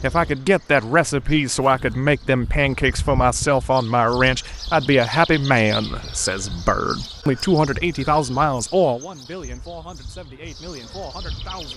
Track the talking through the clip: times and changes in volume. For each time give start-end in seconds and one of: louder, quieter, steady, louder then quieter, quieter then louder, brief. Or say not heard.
0.0-11.7 quieter.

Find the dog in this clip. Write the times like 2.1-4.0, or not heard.
not heard.